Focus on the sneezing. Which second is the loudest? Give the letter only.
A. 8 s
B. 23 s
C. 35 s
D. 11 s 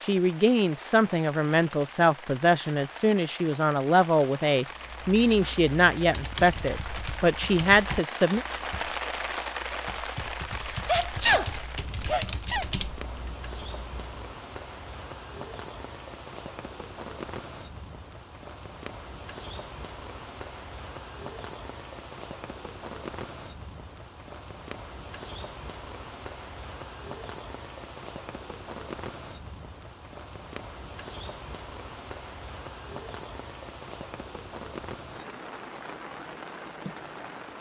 D.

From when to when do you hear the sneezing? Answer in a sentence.
The sneezing can be heard from 10.6 to 12.7 s.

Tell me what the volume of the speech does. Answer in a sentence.
The loudness of the speech stays about the same.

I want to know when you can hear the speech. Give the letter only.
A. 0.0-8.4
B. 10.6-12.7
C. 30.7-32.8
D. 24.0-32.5
A.